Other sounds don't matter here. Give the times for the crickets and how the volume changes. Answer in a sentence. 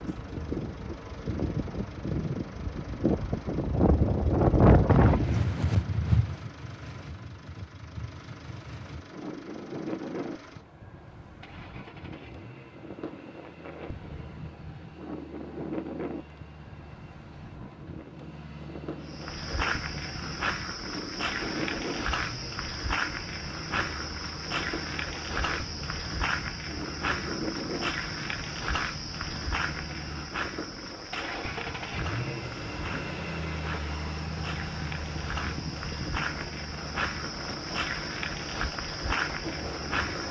You can hear the crickets from 19.0 to 40.2 s, getting quieter then louder.